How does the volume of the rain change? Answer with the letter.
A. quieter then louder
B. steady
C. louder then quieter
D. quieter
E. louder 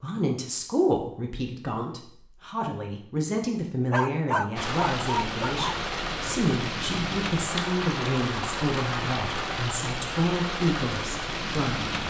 B.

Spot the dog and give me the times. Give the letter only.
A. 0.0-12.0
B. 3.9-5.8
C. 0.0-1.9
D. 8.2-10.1
B.